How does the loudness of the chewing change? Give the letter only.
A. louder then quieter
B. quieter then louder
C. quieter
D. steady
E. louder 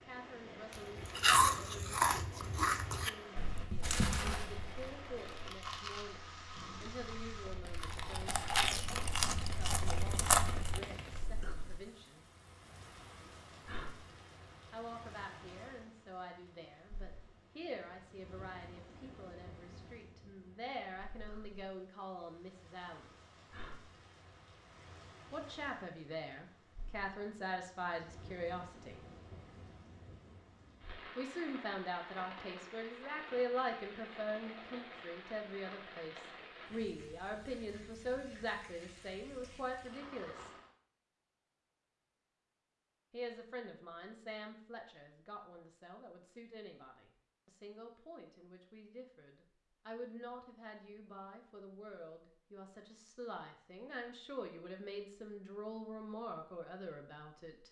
B.